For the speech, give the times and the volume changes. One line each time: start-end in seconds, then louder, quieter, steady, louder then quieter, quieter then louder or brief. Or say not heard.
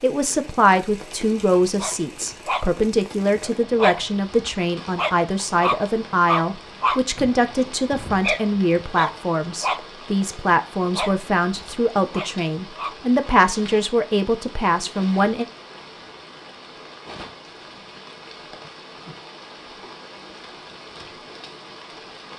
0.0-15.4 steady.